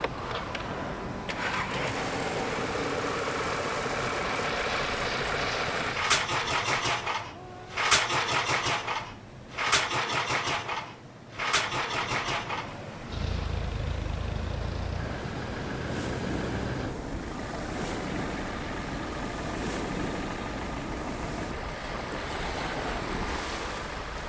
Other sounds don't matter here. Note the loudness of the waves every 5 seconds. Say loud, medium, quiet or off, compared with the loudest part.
loud, medium, medium, loud, loud.